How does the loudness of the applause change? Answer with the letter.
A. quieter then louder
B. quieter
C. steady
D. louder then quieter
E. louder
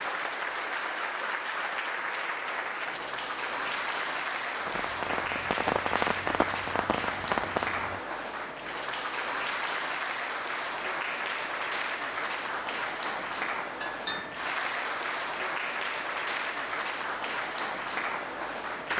C.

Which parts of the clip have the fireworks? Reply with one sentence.
The fireworks can be heard from 4.5 to 8.0 s.